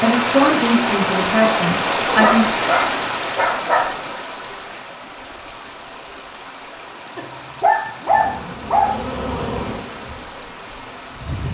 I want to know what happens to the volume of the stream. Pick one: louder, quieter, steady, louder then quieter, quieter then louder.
quieter.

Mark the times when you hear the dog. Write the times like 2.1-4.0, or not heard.
2.0-4.1, 7.2-8.9.